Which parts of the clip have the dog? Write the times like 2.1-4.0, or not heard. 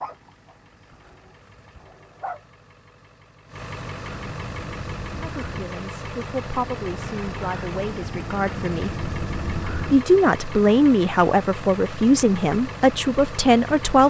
0.0-2.4.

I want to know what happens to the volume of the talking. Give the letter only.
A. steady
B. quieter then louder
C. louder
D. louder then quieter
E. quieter
C.